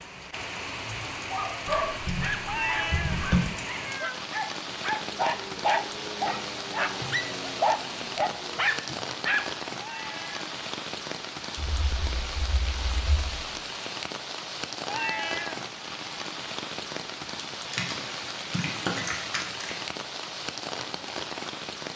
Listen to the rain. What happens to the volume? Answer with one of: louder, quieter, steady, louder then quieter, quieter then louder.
steady.